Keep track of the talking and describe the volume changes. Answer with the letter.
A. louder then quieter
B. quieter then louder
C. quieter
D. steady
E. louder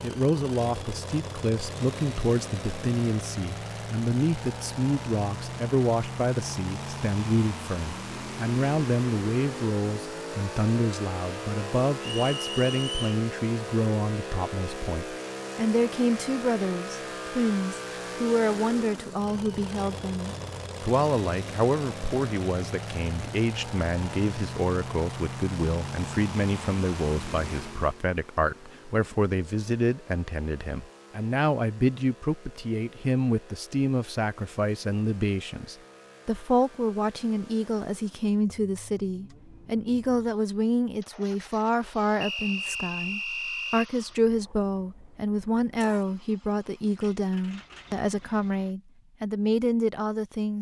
D.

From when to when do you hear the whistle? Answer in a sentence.
You can hear the whistle from 12.0 to 13.2 s and from 42.2 to 43.9 s.